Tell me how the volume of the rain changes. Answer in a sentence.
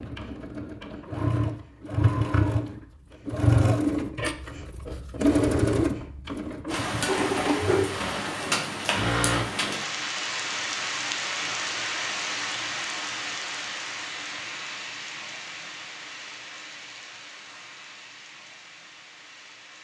The loudness of the rain goes down.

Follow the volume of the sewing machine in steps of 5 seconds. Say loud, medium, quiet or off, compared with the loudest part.
loud, loud, off, off.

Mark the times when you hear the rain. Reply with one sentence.
The rain can be heard from 6.7 to 19.7 s.